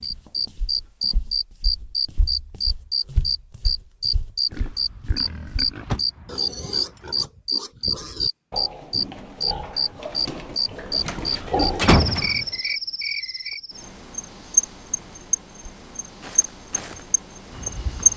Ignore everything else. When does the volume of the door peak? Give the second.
12 s.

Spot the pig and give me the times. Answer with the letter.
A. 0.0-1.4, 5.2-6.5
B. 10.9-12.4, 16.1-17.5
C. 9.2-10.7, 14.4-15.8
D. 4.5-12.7
D.